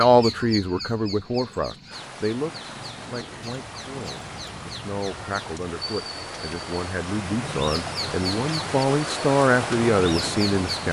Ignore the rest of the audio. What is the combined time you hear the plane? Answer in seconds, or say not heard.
not heard.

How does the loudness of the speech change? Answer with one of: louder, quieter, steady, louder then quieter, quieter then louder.
quieter then louder.